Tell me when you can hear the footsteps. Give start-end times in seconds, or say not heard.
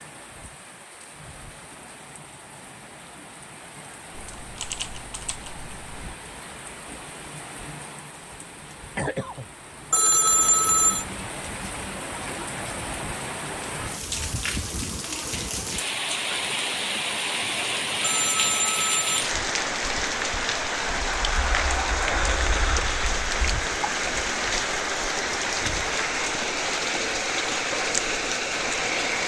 not heard.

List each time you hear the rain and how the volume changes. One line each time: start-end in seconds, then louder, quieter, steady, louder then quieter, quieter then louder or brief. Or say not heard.
0.0-29.2 louder.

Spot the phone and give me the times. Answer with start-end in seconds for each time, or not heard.
9.9-11.1, 18.0-19.2.